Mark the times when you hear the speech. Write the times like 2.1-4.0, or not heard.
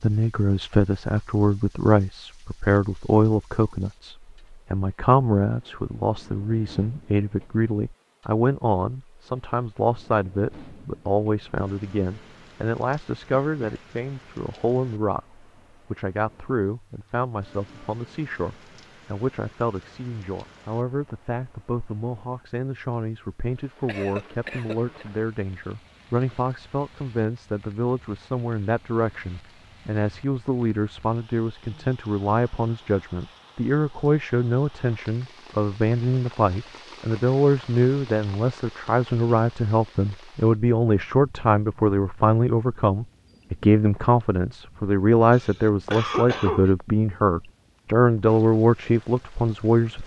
0.0-50.0.